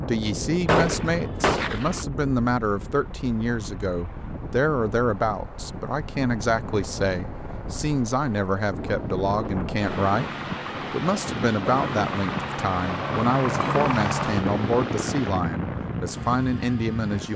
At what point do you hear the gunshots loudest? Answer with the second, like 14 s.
1 s.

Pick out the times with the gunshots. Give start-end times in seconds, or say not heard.
0.7-2.0.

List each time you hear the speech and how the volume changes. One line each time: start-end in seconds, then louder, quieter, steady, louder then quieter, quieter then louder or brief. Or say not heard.
0.0-17.3 steady.